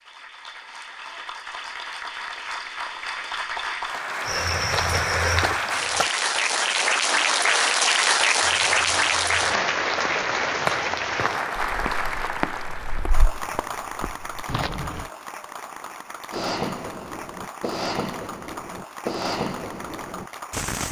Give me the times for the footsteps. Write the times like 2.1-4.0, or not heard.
4.2-6.1, 8.3-15.1.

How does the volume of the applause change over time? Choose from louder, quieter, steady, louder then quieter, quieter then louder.
louder then quieter.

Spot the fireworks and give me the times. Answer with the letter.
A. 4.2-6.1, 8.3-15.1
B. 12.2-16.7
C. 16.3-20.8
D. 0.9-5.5
C.